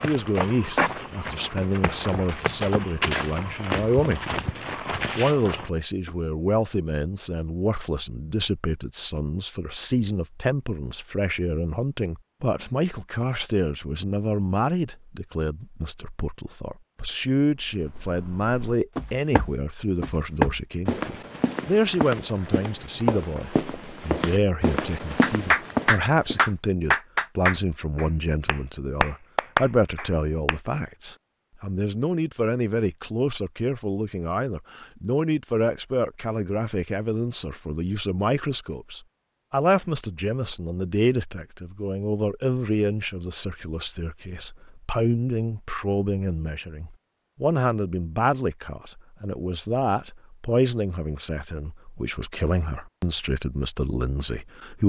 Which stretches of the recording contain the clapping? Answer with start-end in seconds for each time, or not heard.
25.2-30.6.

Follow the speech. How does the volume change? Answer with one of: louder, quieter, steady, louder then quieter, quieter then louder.
steady.